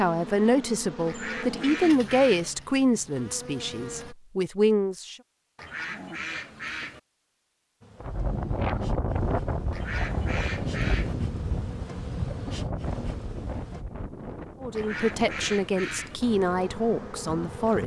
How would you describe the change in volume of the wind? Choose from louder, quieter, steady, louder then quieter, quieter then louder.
quieter.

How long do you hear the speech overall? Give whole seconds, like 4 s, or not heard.
8 s.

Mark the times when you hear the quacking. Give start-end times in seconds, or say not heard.
1.1-2.5, 5.5-7.0, 9.7-11.2, 14.8-16.1.